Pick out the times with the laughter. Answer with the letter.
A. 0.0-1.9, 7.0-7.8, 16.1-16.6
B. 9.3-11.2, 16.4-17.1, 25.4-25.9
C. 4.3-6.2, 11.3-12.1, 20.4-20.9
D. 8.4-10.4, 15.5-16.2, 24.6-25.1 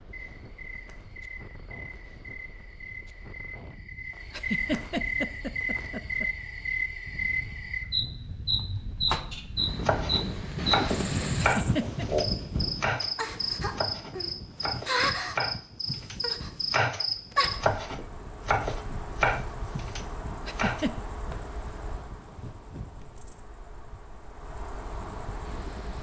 C.